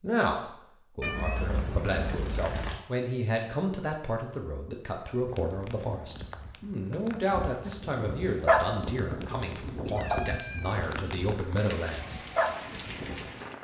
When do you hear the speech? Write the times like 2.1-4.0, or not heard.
0.0-12.2.